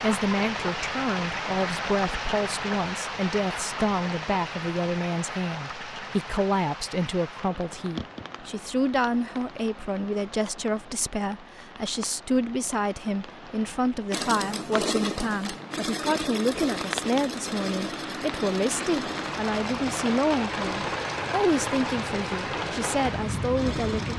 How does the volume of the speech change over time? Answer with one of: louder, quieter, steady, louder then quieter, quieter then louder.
steady.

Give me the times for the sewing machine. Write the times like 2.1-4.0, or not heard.
14.1-24.1.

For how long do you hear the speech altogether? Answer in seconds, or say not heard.
24 s.